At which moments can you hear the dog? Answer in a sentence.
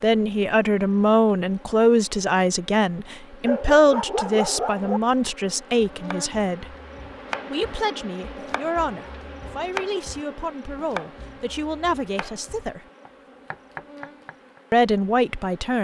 The dog can be heard from 3.4 to 5.0 s.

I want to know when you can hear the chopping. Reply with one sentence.
You can hear the chopping from 5.8 to 14.6 s.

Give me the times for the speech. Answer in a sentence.
You can hear the speech from 0.0 to 6.8 s, from 7.5 to 12.8 s and from 14.7 to 15.7 s.